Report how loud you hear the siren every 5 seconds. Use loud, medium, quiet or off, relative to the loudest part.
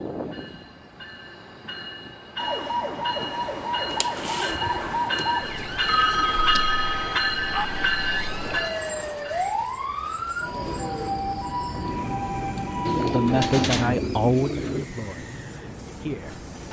loud, loud, loud, off.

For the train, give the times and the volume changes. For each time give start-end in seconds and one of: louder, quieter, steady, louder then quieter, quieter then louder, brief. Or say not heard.
0.0-16.6 louder then quieter.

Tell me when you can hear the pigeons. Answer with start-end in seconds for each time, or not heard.
3.9-6.5, 12.8-14.8.